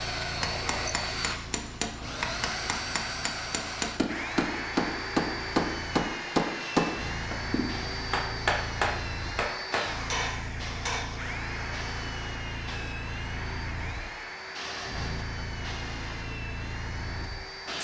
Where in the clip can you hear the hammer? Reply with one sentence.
You can hear the hammer from 0.2 to 11.1 s.